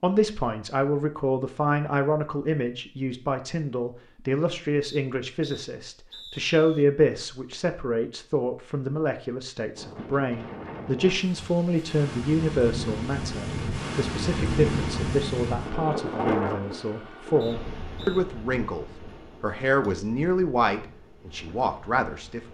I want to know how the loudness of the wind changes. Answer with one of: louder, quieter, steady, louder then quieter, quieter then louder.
louder then quieter.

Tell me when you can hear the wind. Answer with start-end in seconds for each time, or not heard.
9.8-22.4.